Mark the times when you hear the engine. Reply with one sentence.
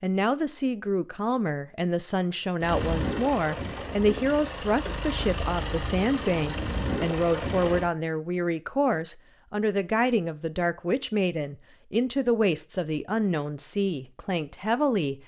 The engine can be heard from 2.6 to 7.9 s.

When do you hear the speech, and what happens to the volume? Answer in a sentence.
The speech can be heard from 0.0 to 15.2 s, at a steady volume.